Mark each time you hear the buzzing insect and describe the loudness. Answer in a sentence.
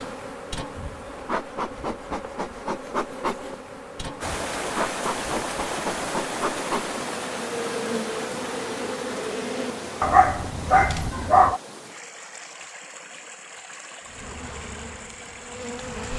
You can hear the buzzing insect from 0.0 to 10.2 s, at a steady volume; and briefly from 14.1 to 16.1 s.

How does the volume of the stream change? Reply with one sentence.
The volume of the stream goes down.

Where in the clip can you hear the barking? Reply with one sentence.
You can hear the barking from 10.0 to 11.6 s.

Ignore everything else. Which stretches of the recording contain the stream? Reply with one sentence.
You can hear the stream from 4.2 to 16.1 s.